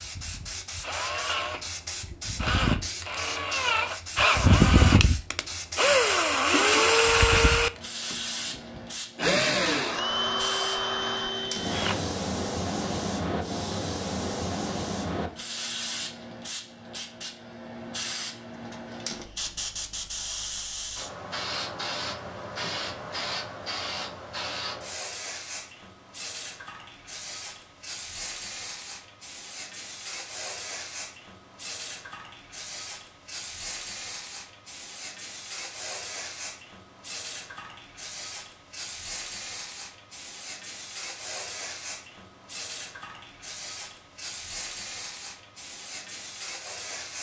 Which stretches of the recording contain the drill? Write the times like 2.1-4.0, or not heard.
0.0-12.0.